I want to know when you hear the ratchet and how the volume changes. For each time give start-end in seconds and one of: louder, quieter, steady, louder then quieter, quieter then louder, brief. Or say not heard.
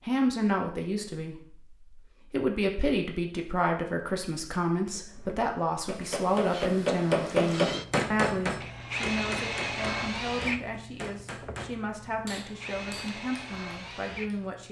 not heard.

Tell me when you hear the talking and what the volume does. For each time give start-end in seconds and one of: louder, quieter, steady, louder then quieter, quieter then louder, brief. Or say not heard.
0.1-14.6 quieter.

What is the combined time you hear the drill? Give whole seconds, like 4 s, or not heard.
8 s.